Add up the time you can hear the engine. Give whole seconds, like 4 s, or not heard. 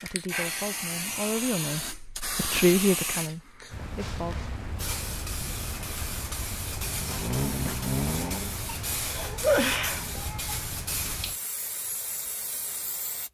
2 s.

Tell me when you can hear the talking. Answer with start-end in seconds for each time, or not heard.
0.0-4.3.